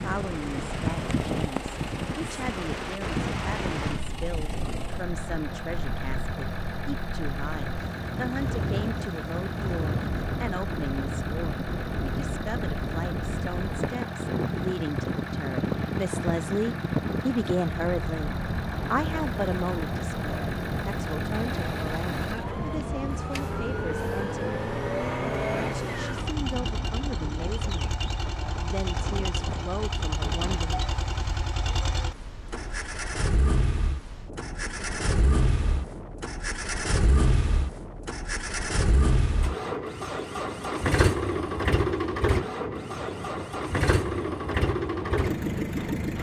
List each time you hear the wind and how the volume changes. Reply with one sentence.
You can hear the wind from 0.0 to 46.1 s, getting quieter.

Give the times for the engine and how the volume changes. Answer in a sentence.
The engine can be heard from 0.0 to 46.1 s, getting louder.